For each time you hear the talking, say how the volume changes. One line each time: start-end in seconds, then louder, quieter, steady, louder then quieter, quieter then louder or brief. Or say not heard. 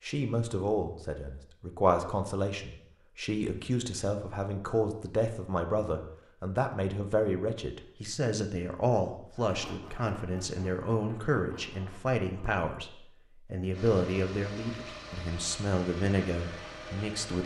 0.0-17.4 steady.